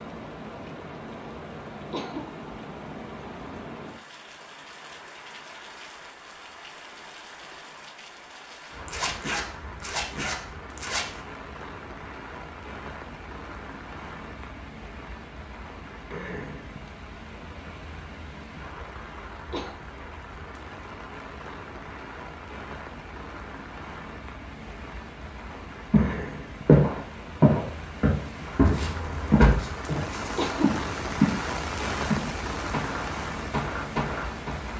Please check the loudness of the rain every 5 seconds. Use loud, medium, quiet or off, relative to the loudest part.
medium, medium, medium, medium, medium, medium, loud.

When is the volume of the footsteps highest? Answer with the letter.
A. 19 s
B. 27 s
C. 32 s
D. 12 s
B.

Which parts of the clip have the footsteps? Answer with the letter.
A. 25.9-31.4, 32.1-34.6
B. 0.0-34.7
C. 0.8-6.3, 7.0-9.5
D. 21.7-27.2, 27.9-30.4
A.